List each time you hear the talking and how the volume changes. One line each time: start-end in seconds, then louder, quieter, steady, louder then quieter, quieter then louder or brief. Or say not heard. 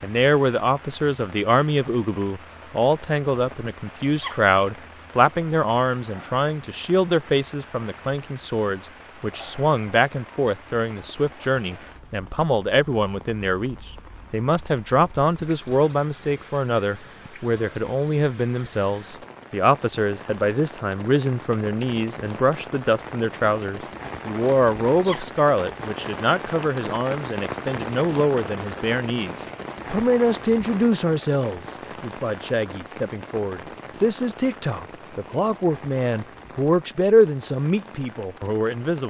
0.0-39.0 steady.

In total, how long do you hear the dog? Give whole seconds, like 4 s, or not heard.
not heard.